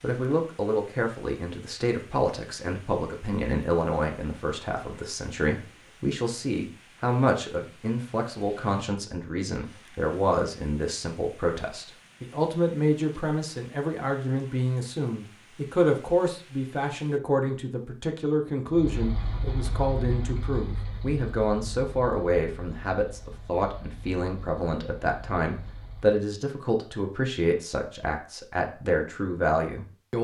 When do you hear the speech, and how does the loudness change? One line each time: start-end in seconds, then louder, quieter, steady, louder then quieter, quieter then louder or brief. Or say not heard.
0.0-30.2 steady.